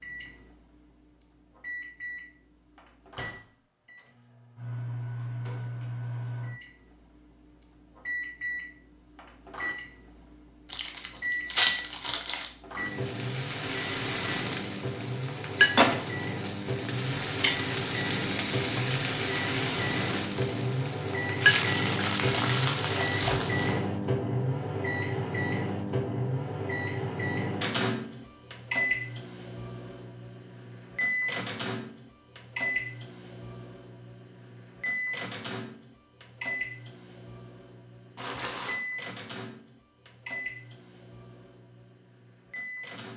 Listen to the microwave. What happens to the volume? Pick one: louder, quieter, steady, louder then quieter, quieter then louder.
louder then quieter.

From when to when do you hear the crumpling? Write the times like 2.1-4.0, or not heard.
10.7-12.5, 22.4-23.9, 38.1-38.8.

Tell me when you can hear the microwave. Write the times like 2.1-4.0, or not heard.
0.0-43.1.